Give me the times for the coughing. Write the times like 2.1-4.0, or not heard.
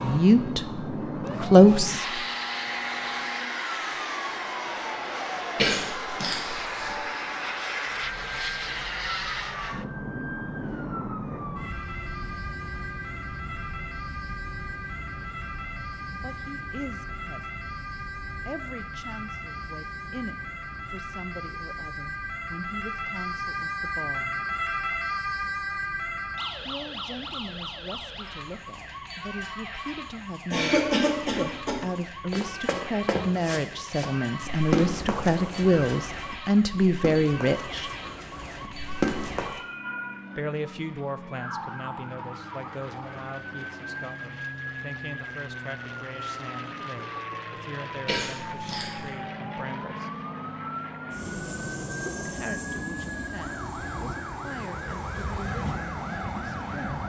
5.5-7.0, 30.5-31.8, 48.0-49.0.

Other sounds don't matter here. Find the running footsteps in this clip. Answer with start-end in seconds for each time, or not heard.
32.3-39.6.